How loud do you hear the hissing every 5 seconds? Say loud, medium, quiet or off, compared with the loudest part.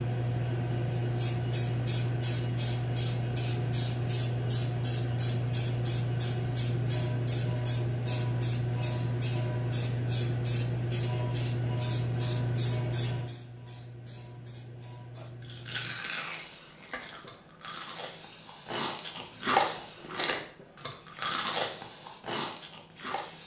loud, loud, loud, quiet, quiet.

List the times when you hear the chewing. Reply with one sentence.
You can hear the chewing from 15.2 to 23.4 s.